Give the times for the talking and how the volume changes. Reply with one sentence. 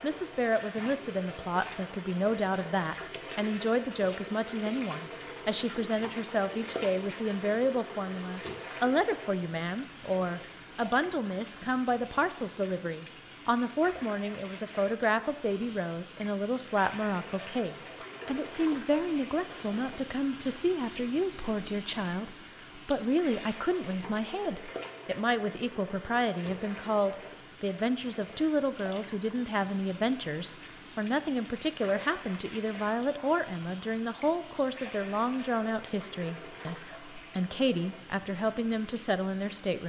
The talking can be heard from 0.0 to 39.8 s, at a steady volume.